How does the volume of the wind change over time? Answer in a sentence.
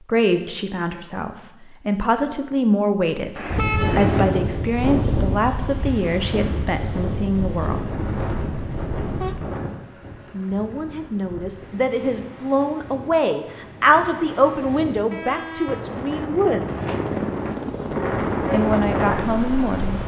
The loudness of the wind goes down, then up.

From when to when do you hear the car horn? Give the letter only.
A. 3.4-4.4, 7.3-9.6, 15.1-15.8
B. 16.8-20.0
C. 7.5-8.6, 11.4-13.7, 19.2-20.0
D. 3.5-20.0
A.